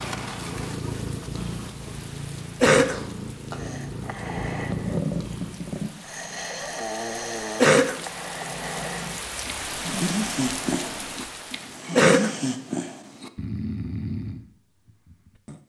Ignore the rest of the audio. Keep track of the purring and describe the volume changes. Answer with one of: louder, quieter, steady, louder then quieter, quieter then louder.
steady.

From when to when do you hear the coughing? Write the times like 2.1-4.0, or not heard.
2.6-3.0, 7.5-8.0, 11.9-12.4.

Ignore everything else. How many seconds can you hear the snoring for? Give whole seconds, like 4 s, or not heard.
12 s.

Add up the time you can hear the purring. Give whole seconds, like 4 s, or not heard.
6 s.